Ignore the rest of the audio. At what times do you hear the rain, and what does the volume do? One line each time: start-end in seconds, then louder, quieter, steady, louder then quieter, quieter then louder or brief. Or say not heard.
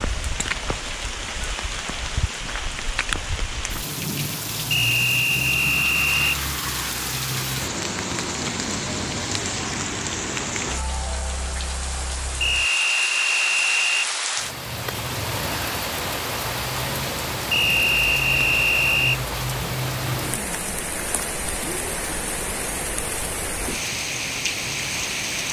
0.0-25.4 steady.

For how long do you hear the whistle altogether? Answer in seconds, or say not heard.
5 s.